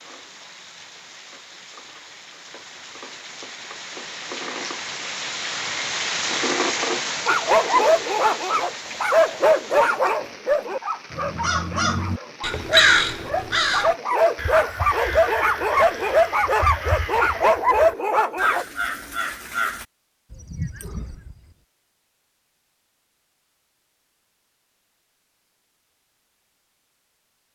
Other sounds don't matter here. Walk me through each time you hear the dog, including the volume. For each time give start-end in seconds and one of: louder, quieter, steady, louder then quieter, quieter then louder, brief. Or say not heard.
7.2-18.6 quieter then louder.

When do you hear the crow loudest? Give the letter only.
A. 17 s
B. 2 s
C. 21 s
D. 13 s
D.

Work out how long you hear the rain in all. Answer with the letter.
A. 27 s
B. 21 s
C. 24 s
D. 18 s
D.